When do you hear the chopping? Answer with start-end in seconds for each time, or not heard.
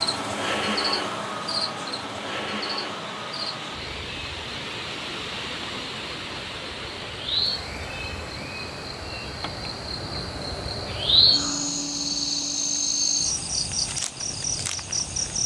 not heard.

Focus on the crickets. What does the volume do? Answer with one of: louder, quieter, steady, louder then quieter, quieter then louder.
quieter then louder.